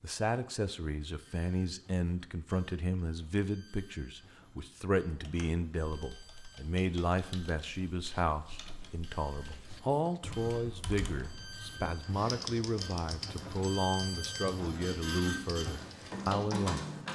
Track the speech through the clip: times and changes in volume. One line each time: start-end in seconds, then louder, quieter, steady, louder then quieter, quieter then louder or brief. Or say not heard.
0.0-16.9 steady.